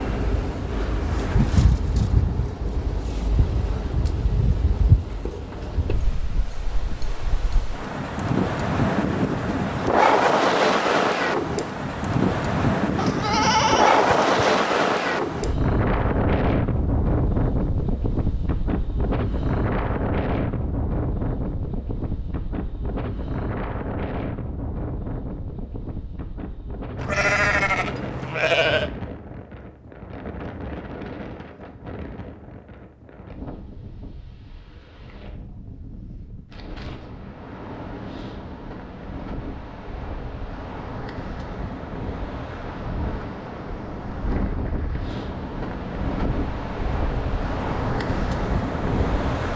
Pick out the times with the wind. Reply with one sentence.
The wind can be heard from 0.0 to 49.5 s.